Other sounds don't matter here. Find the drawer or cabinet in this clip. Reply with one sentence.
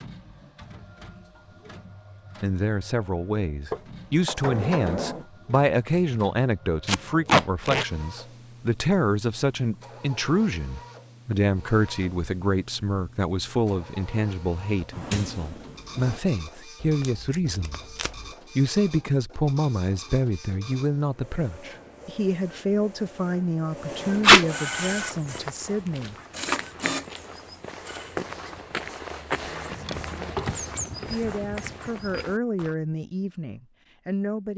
You can hear the drawer or cabinet from 3.7 to 5.2 s, from 14.9 to 16.2 s and from 29.6 to 30.6 s.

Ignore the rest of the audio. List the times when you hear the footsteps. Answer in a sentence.
The footsteps can be heard from 24.7 to 32.8 s.